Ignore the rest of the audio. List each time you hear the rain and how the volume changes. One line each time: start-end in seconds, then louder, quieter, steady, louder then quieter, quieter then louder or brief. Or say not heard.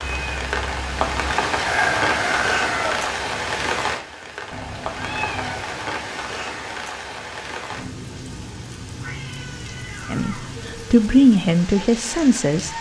0.0-12.7 quieter.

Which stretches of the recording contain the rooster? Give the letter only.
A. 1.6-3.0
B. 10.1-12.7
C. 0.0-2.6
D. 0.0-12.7
A.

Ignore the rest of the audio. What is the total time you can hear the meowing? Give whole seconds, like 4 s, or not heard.
4 s.